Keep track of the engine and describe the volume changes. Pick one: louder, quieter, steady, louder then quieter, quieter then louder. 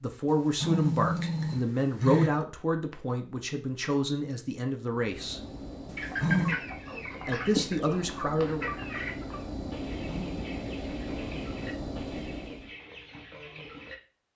louder.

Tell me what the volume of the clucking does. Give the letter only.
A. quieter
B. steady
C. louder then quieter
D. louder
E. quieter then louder
A.